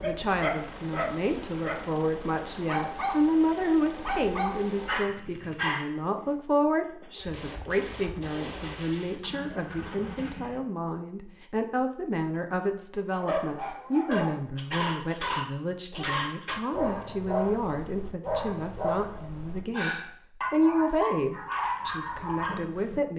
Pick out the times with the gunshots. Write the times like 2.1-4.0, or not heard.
7.2-10.6.